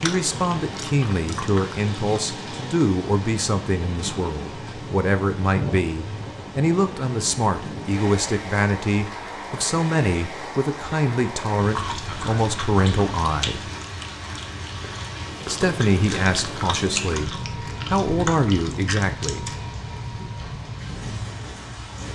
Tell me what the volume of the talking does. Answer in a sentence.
The volume of the talking stays about the same.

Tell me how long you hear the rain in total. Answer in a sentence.
The rain can be heard for 22 seconds in total.